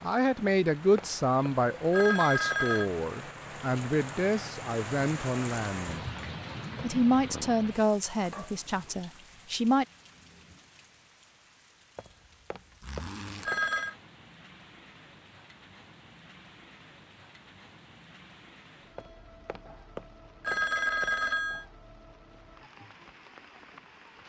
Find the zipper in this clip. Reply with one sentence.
The zipper can be heard from 8.2 to 8.8 s and from 12.8 to 13.5 s.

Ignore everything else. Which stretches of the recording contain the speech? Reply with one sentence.
You can hear the speech from 0.0 to 6.0 s and from 6.8 to 9.8 s.